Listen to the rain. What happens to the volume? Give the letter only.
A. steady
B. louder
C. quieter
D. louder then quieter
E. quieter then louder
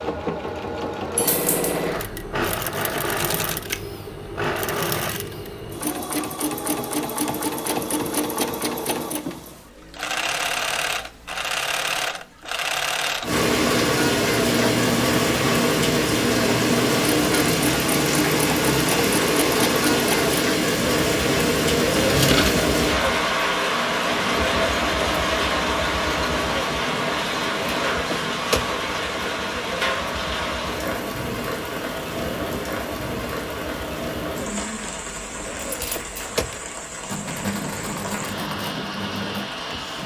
C.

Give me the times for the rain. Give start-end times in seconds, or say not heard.
13.2-40.0.